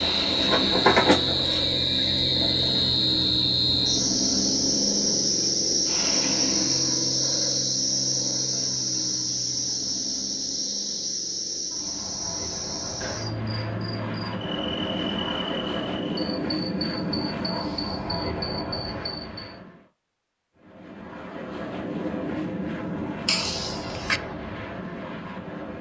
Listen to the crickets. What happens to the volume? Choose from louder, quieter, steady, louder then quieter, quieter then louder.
quieter.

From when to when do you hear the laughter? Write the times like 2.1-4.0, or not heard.
23.2-24.2.